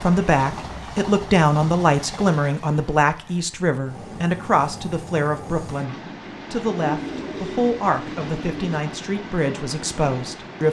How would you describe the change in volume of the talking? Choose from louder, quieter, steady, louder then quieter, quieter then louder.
quieter.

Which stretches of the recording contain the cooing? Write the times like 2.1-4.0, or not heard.
6.8-8.8.